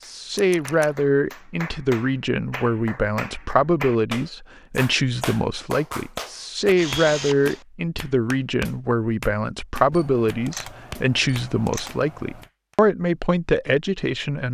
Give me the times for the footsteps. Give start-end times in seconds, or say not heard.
not heard.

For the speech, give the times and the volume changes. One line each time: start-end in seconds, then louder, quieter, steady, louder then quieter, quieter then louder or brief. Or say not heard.
0.1-14.4 steady.